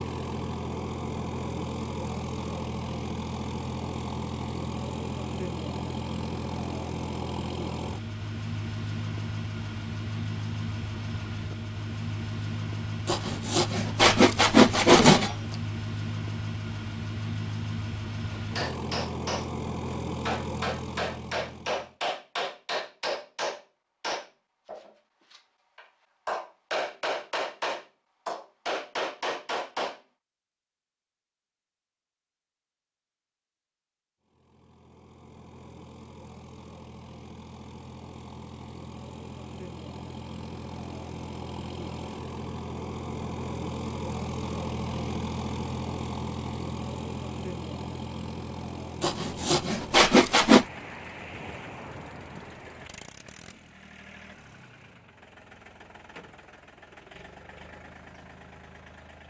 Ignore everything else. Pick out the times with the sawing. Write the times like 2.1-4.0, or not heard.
13.1-15.6, 49.0-50.6.